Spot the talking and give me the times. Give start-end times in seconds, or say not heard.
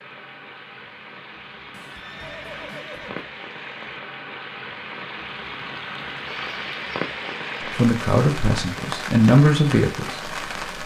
7.6-10.8.